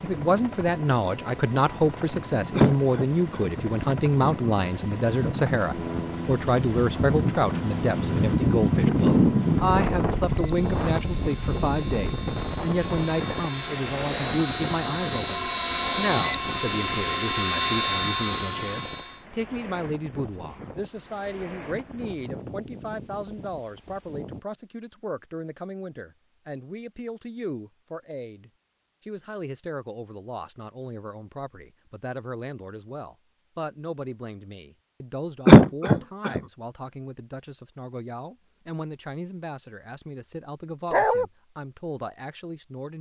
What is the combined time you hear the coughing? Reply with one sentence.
The coughing can be heard for 2 seconds in total.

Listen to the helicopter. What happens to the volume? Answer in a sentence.
The volume of the helicopter goes up.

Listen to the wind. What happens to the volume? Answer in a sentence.
The volume of the wind goes up, then down.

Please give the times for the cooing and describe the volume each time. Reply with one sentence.
The cooing can't be heard in this clip.